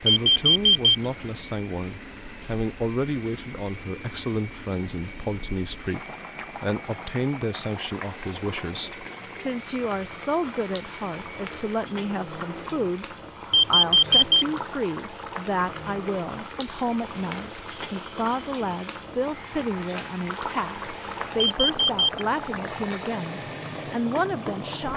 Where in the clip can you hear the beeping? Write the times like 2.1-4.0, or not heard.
0.1-0.9, 13.5-14.4, 21.4-22.2.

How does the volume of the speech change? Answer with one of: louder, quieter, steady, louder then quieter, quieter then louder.
steady.